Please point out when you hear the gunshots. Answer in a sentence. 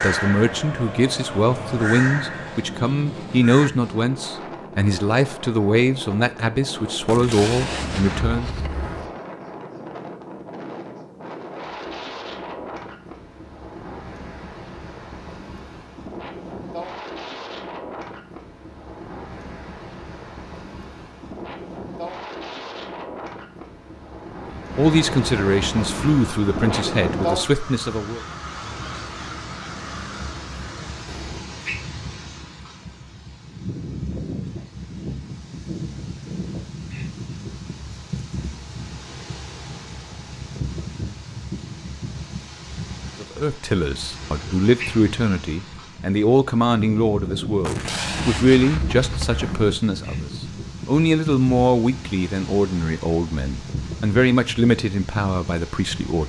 The gunshots can be heard from 7.0 to 9.1 s and from 47.6 to 49.6 s.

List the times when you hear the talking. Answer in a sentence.
The talking can be heard from 0.0 to 8.6 s, from 24.5 to 28.2 s and from 43.2 to 56.2 s.